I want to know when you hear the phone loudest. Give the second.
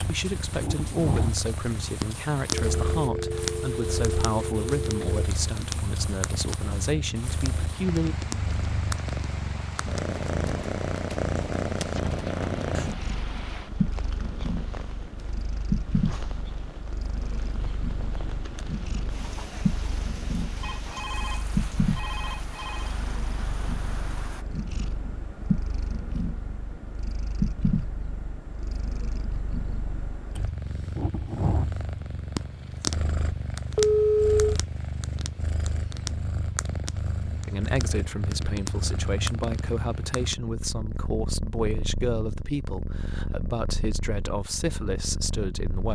34 s.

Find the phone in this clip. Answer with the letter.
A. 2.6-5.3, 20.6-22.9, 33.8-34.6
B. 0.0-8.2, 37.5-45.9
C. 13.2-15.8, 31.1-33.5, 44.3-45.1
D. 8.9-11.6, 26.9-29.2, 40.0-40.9
A.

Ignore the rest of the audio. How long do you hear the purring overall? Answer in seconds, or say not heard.
46 s.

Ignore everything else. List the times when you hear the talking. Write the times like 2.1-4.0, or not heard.
0.0-8.2, 37.5-45.9.